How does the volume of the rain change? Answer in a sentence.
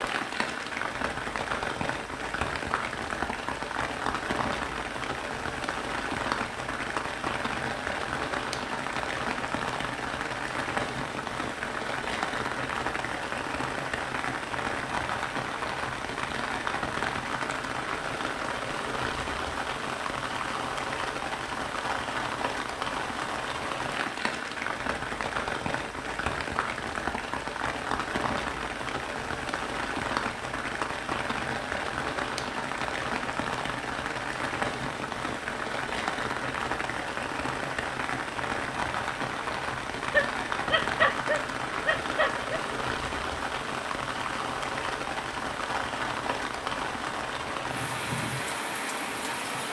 The volume of the rain stays about the same.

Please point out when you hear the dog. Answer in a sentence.
The dog can be heard from 40.1 to 42.6 s.